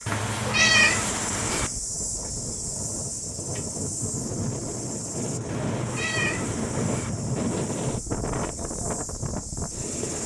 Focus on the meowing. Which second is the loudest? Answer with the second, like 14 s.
1 s.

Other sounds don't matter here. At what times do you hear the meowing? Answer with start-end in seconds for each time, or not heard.
0.1-1.7, 5.5-7.1.